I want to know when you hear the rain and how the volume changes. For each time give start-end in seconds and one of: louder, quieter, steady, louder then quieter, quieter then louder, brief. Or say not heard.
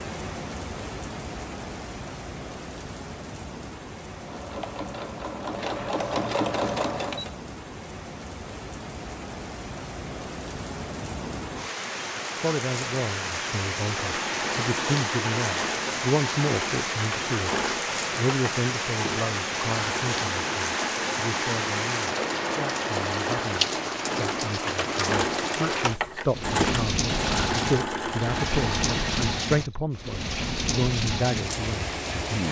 0.0-32.4 louder.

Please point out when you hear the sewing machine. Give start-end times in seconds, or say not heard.
4.1-7.3, 14.0-29.4.